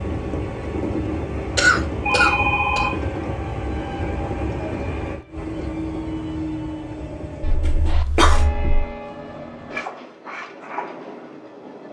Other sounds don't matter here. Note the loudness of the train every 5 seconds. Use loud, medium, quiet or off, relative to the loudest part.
loud, loud, medium.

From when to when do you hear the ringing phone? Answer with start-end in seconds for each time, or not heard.
2.0-3.0, 7.4-8.9.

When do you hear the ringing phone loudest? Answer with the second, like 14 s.
2 s.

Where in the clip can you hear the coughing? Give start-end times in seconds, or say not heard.
1.6-2.9, 7.7-8.4.